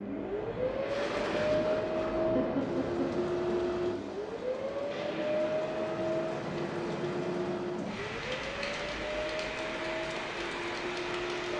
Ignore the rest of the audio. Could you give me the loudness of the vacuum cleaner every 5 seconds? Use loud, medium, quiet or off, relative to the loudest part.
loud, loud, medium.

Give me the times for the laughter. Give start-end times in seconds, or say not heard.
2.4-3.2.